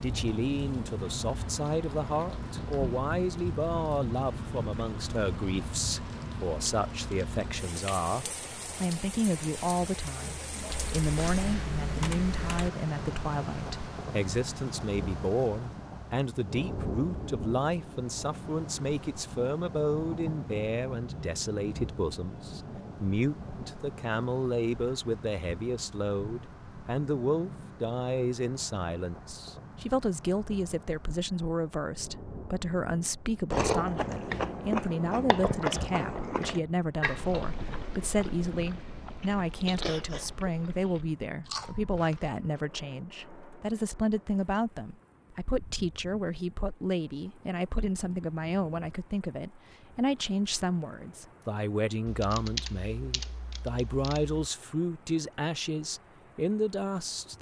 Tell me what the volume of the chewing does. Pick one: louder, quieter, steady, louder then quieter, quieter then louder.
quieter.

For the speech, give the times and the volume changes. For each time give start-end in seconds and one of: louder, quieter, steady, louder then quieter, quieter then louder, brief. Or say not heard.
0.0-57.3 steady.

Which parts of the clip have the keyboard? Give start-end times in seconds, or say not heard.
10.7-12.7, 52.0-54.4.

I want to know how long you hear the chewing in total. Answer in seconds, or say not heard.
9 s.